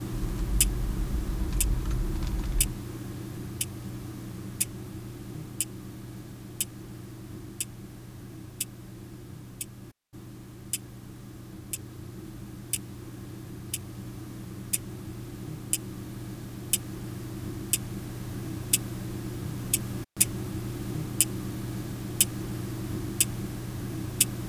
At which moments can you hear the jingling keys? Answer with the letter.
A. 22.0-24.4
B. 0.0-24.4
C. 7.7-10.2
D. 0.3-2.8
D.